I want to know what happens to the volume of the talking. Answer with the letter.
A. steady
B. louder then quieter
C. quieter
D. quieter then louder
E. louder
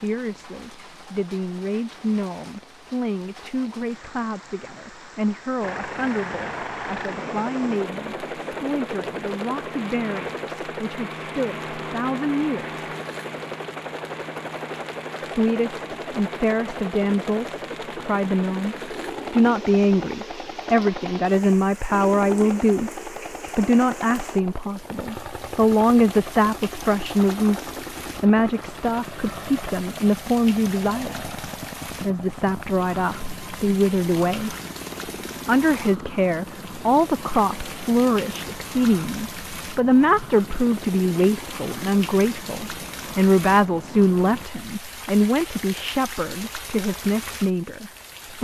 E.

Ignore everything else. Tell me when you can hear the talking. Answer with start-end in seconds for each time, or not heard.
0.0-12.8, 15.2-34.5, 35.5-48.3.